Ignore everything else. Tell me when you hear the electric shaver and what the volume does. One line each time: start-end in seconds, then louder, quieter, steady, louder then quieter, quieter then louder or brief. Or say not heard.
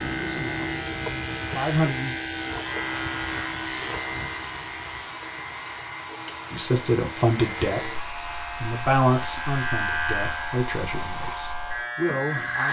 0.0-12.6 quieter then louder.